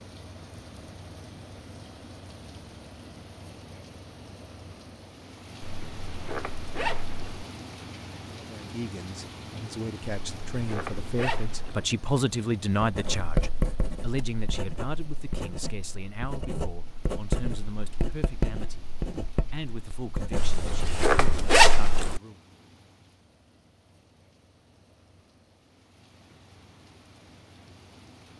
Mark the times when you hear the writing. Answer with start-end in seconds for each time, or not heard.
12.8-21.6.